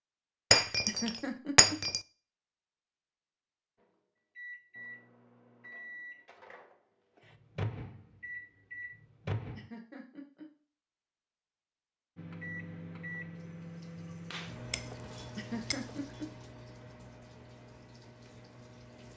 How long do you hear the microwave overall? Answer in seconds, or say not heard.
13 s.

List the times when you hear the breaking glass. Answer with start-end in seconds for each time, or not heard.
0.5-2.0, 14.7-15.9.